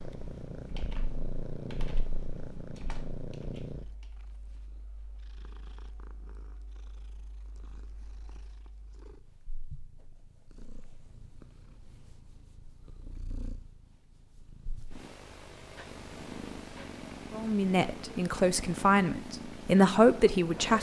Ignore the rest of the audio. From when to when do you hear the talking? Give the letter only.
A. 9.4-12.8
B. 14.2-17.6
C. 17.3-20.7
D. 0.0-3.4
C.